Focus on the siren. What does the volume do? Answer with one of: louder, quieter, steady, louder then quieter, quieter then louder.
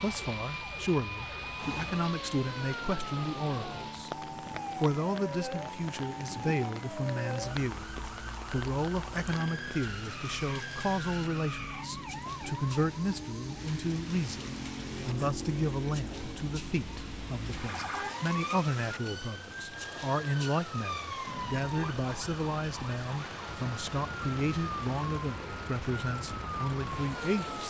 steady.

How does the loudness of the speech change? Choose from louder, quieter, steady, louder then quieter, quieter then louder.
steady.